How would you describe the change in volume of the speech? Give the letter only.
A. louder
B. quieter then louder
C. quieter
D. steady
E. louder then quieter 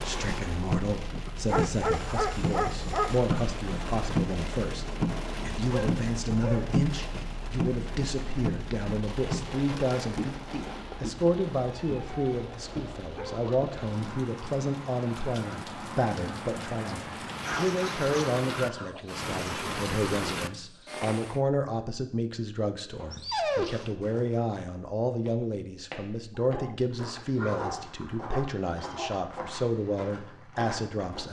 D.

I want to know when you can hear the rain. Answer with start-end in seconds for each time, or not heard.
0.0-21.4.